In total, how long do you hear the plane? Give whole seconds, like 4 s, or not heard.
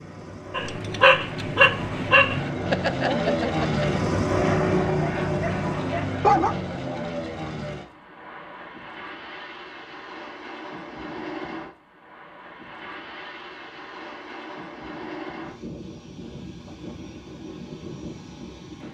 19 s.